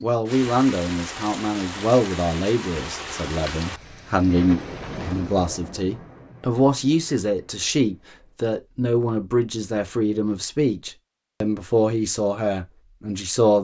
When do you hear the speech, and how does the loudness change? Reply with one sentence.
The speech can be heard from 0.0 to 13.5 s, at a steady volume.